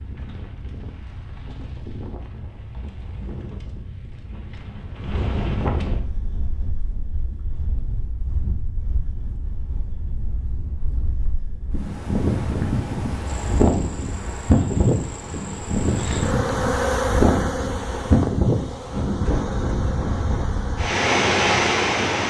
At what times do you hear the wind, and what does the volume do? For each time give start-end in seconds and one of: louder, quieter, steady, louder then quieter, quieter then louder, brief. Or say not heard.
0.0-22.2 louder.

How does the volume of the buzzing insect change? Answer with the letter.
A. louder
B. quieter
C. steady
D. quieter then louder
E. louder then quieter
E.